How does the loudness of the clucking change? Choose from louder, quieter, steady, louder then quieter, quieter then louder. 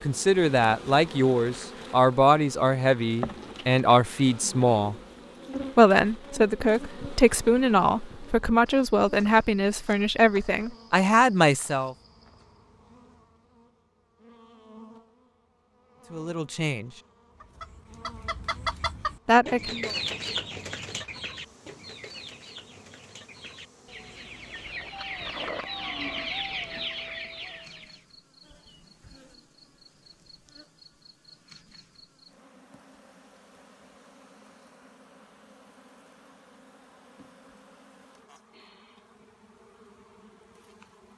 quieter then louder.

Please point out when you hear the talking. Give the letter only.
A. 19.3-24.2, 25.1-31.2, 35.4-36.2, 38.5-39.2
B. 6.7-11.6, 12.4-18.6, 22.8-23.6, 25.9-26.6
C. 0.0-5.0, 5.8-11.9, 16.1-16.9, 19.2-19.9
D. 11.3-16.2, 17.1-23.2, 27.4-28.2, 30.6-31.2
C.